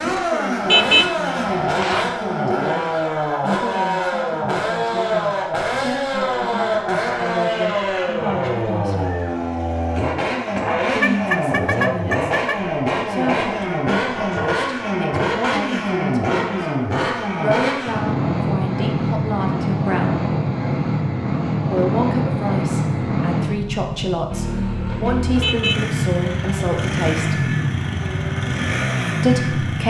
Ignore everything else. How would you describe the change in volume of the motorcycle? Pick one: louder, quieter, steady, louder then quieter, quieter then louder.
steady.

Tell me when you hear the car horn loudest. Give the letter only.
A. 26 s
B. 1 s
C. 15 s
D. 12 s
B.